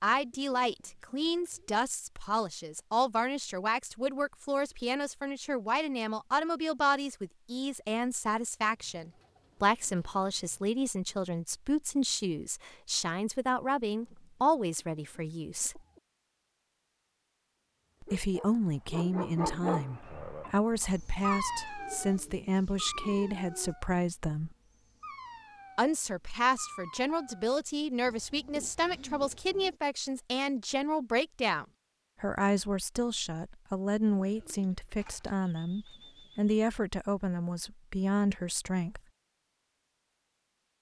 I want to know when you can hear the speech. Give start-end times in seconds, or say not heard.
0.0-15.8, 18.0-24.6, 25.8-39.0.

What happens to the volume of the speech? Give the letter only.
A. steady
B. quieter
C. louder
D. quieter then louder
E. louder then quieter
A.